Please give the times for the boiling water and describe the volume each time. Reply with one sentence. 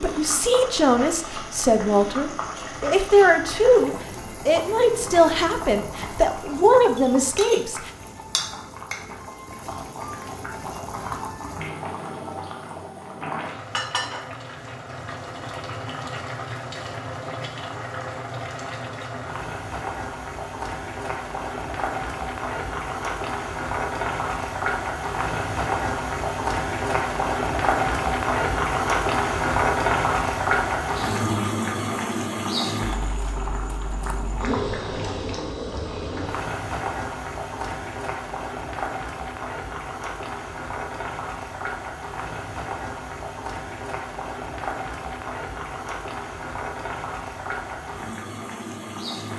The boiling water can be heard from 0.0 to 49.3 s, getting louder then quieter.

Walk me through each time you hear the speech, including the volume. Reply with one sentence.
The speech can be heard from 0.0 to 7.9 s, at a steady volume.